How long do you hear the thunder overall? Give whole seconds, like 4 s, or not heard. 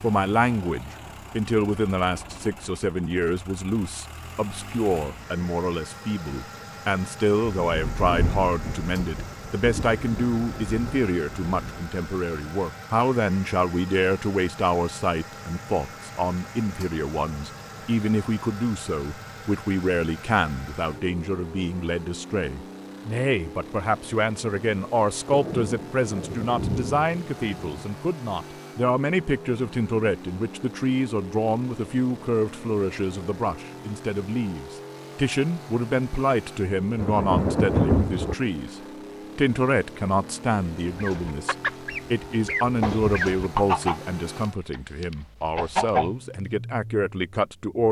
8 s.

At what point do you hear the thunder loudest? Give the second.
38 s.